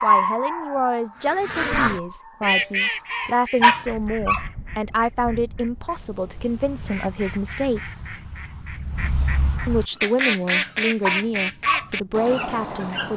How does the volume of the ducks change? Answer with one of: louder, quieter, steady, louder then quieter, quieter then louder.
quieter then louder.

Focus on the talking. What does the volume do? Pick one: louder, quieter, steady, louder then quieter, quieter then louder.
steady.